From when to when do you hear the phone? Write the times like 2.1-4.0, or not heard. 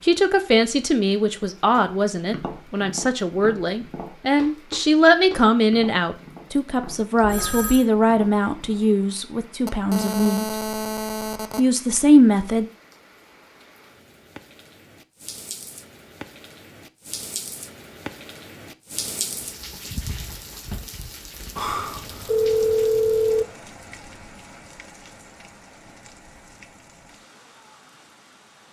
7.2-7.8, 9.7-11.6, 21.6-23.4.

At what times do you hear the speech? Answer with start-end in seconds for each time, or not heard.
0.0-10.6, 11.6-12.7.